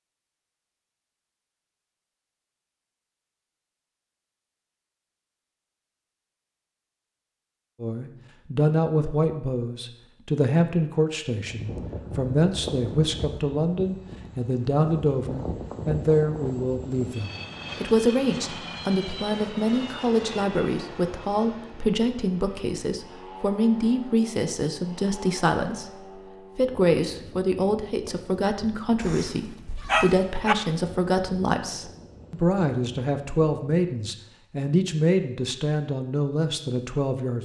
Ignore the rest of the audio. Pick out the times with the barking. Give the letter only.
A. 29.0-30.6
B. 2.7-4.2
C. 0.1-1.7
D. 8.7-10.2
A.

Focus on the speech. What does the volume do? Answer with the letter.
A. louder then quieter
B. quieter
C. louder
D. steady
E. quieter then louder
D.